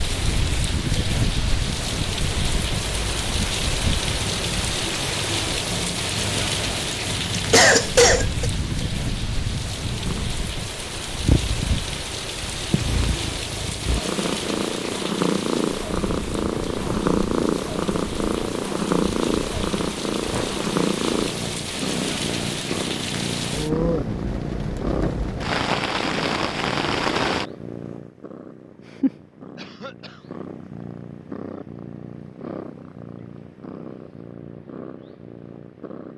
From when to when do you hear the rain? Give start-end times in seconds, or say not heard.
0.0-27.4.